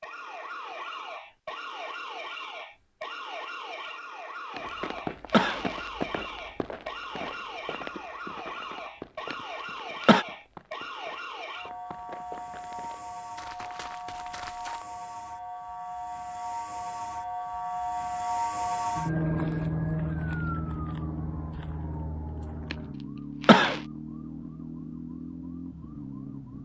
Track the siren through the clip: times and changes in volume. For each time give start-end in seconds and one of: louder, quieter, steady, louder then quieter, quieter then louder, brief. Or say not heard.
0.0-26.6 louder then quieter.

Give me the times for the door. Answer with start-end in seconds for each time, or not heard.
not heard.